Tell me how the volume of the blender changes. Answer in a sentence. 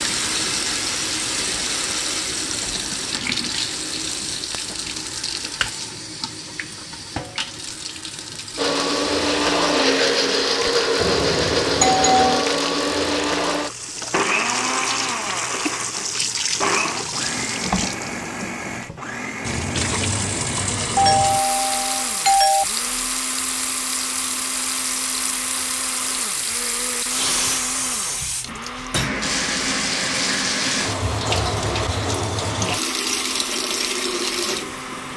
The volume of the blender goes down.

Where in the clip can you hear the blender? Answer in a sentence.
The blender can be heard from 8.6 to 35.1 s.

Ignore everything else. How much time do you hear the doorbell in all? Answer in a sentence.
The doorbell can be heard for 3 seconds in total.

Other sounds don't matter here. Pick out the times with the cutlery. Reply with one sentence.
You can't hear the cutlery here.